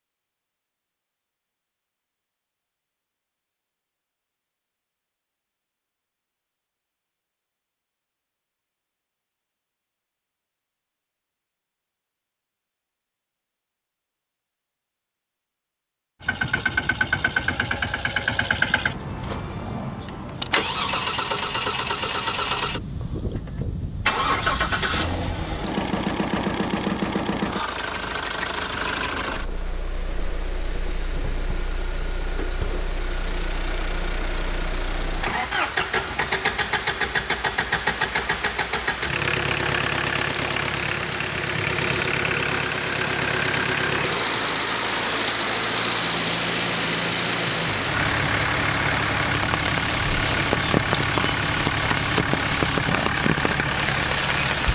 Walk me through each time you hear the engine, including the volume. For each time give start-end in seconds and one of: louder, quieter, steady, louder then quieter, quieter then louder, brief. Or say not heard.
16.2-54.7 steady.